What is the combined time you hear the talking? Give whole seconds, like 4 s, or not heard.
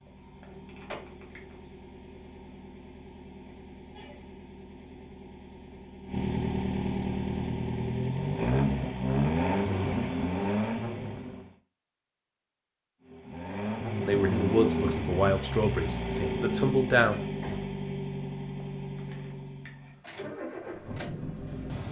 3 s.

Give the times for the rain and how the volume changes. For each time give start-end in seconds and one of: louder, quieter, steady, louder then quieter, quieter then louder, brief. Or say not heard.
not heard.